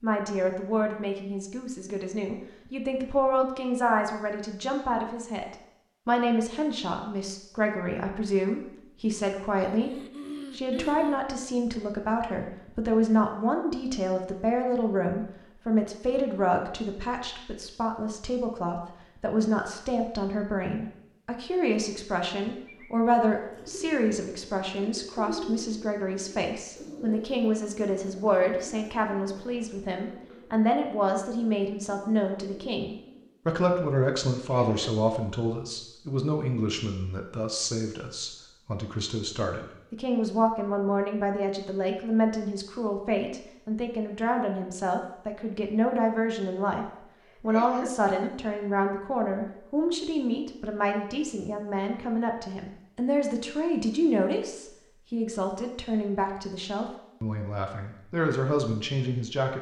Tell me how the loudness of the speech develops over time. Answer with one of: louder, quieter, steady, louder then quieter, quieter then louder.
steady.